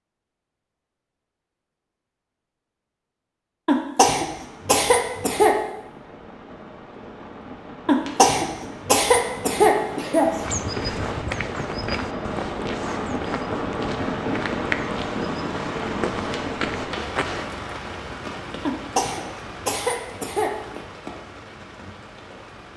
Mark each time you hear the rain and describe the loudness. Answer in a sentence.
The rain can be heard from 4.2 to 22.7 s, getting louder then quieter.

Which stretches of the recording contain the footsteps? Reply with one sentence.
You can hear the footsteps from 10.3 to 17.5 s.